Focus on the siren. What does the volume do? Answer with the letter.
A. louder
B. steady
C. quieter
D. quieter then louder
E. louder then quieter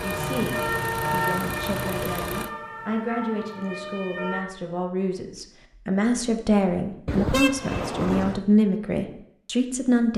C.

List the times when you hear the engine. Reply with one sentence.
The engine can be heard from 0.0 to 2.5 s.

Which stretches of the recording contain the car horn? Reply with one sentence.
The car horn can be heard from 0.1 to 2.0 s and from 7.0 to 8.4 s.